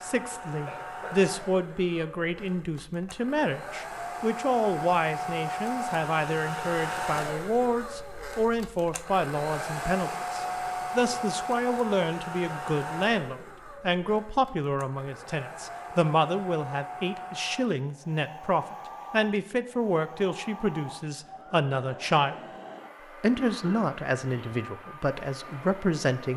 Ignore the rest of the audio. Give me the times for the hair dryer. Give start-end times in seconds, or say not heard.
0.0-26.3.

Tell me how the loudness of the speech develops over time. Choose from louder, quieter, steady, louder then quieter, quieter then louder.
steady.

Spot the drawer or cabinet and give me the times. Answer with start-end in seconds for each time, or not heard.
not heard.